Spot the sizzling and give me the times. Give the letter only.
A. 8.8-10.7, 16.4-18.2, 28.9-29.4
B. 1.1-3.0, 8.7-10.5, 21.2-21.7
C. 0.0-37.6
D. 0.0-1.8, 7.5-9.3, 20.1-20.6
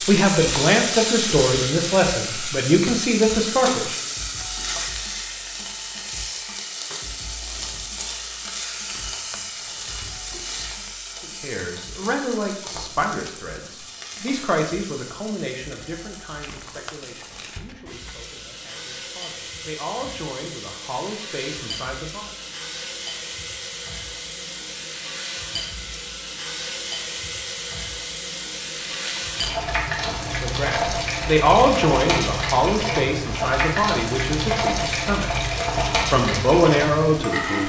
C.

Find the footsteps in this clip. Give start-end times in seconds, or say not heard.
not heard.